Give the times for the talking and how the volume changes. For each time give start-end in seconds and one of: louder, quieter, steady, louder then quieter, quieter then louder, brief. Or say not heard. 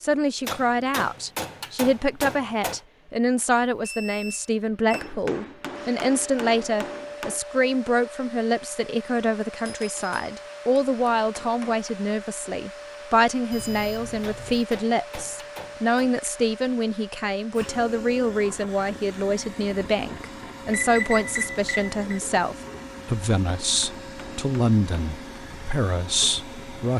0.0-26.9 steady.